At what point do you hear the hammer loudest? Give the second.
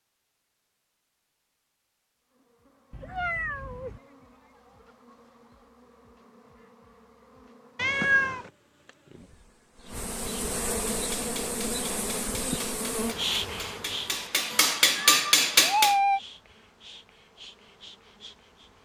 15 s.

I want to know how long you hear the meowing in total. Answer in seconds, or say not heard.
3 s.